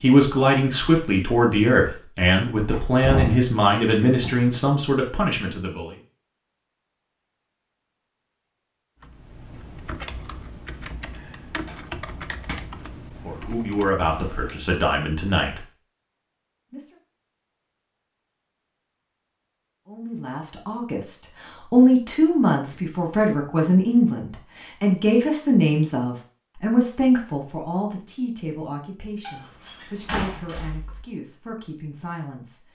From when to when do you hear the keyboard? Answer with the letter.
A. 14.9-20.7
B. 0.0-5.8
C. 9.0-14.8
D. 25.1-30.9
C.